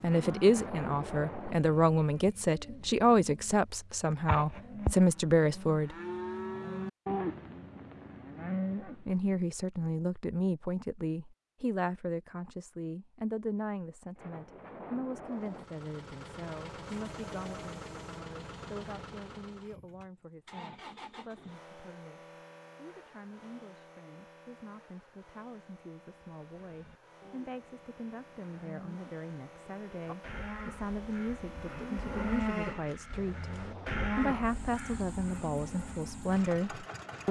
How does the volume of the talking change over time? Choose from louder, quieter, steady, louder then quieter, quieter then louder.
quieter then louder.